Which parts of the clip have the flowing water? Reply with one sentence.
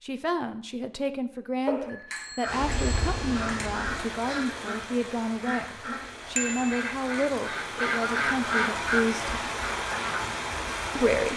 You can hear the flowing water from 2.5 to 11.3 s.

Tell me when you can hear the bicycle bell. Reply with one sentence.
You can hear the bicycle bell from 1.6 to 3.7 s and from 6.3 to 6.8 s.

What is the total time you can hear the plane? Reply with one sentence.
You can't hear the plane here.